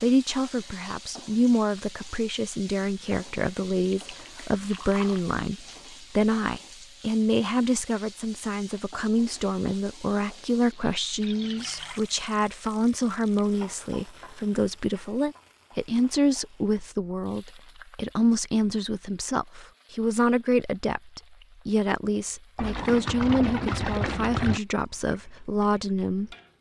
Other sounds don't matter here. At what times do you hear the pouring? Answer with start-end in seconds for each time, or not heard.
3.8-5.2, 11.2-12.0, 22.6-24.6.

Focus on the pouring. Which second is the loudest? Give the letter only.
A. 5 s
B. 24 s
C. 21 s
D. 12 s
B.